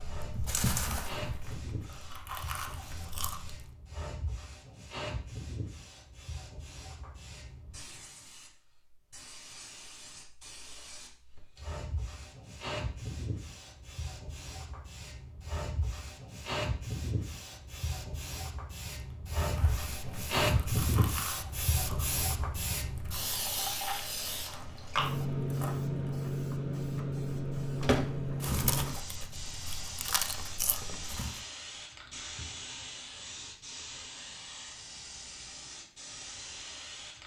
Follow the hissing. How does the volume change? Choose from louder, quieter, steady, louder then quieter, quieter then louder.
louder then quieter.